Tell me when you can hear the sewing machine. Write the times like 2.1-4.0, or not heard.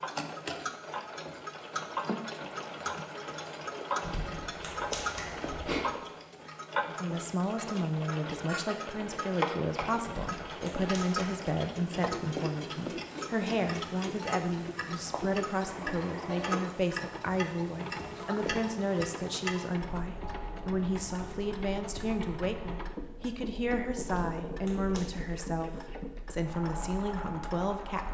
0.1-28.0.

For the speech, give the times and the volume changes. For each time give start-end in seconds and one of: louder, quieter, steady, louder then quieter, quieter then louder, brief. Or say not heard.
6.8-28.0 steady.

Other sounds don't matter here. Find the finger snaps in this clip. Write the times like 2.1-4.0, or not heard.
4.0-5.8, 10.1-11.3, 24.1-25.1.